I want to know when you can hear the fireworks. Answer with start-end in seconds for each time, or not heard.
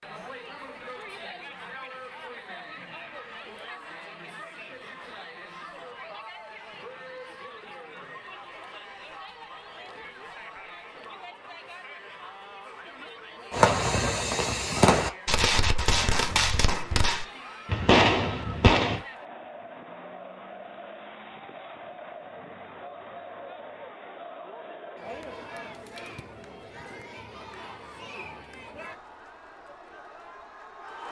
13.5-19.0.